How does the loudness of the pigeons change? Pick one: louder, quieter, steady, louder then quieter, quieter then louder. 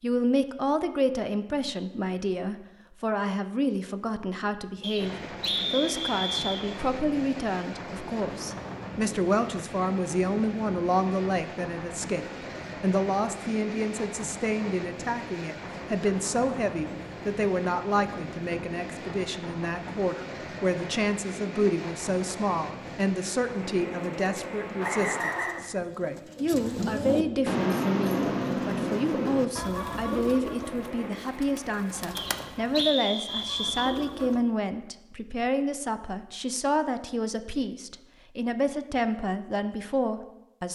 louder then quieter.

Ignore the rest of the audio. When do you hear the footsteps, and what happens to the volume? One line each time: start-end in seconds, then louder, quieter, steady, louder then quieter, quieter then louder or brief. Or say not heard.
not heard.